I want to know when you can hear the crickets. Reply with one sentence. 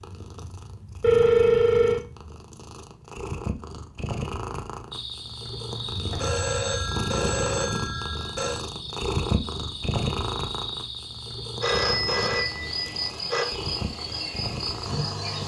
The crickets can be heard from 4.9 to 15.4 s.